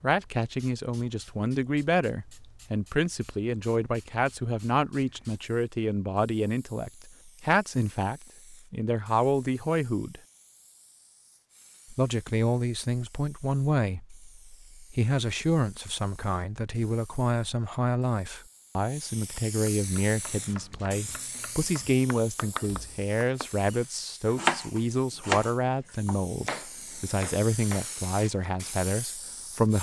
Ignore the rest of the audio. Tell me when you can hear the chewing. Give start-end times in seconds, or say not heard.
not heard.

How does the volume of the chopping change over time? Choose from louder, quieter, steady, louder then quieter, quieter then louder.
louder then quieter.